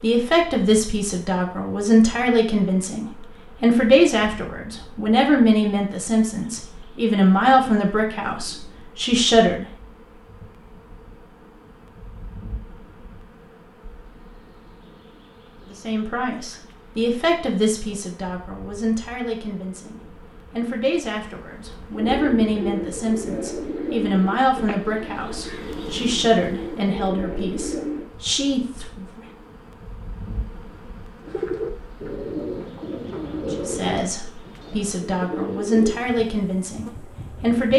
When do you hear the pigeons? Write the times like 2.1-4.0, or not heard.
21.9-28.1, 31.2-36.2.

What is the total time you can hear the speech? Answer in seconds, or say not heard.
27 s.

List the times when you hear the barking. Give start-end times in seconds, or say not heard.
not heard.